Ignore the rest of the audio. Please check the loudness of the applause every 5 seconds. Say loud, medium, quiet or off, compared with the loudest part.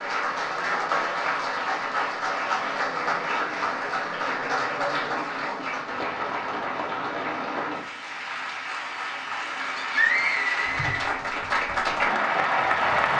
loud, medium, loud.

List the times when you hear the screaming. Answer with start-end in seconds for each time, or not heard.
9.8-11.1.